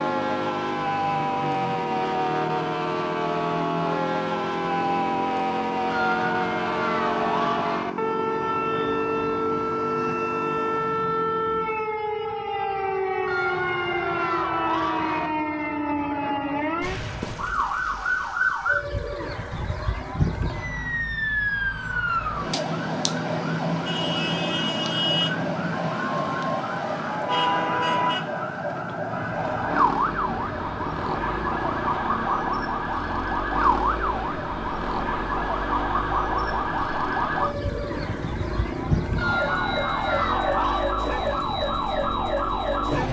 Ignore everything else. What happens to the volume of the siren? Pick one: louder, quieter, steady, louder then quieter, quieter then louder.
steady.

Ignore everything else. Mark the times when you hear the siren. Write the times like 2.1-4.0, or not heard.
0.0-43.0.